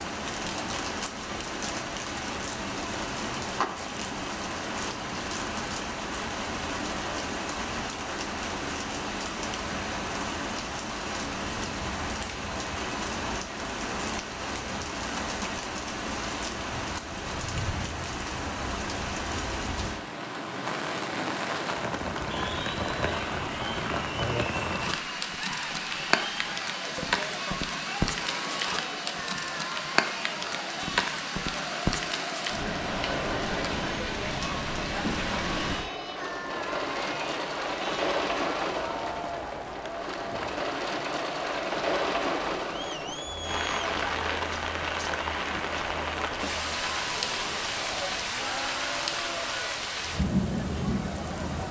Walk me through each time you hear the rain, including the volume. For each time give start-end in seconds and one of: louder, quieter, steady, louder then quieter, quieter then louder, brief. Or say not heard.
0.0-51.6 steady.